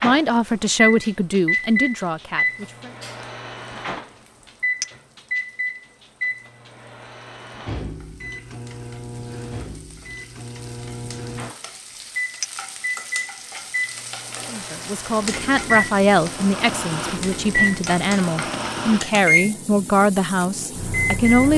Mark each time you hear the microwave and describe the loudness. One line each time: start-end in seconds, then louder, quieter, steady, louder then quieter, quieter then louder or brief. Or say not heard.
0.0-21.5 quieter then louder.